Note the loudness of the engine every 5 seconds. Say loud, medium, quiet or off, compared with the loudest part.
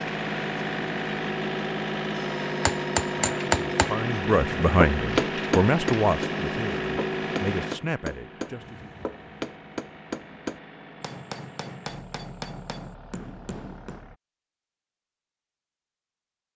loud, loud, quiet, off.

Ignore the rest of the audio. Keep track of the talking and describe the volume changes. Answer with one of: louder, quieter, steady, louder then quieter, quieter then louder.
quieter.